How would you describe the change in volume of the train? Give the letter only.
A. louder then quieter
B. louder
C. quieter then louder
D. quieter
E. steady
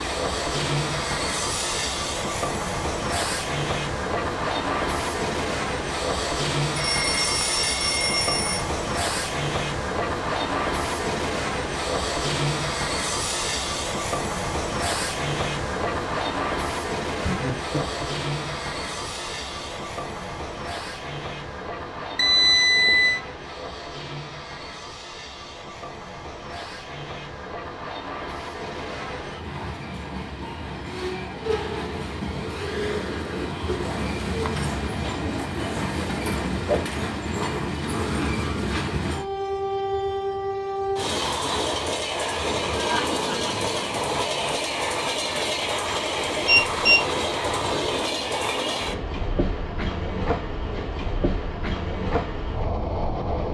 C.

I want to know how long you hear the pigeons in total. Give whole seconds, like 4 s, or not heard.
not heard.